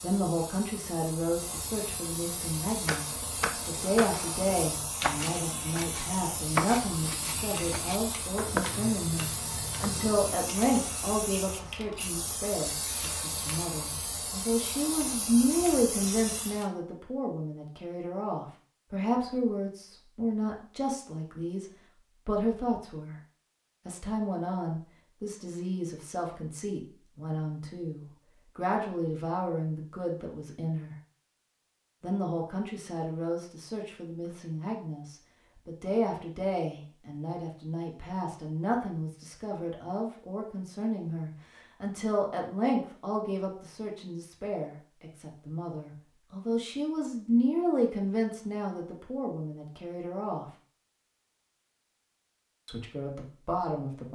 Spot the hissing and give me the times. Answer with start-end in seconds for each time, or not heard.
0.0-16.7.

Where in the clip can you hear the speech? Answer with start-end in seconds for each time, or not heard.
0.0-23.1, 23.9-30.9, 32.0-50.5, 52.6-54.0.